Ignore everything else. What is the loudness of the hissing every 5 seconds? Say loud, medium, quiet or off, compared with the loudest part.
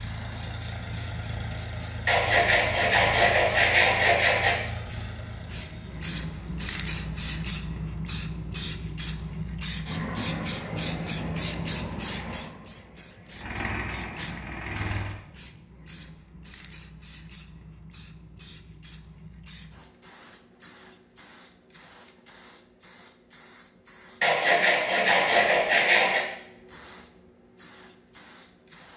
medium, loud, loud, quiet, quiet, quiet.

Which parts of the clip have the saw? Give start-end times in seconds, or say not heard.
2.0-4.6, 24.2-26.2.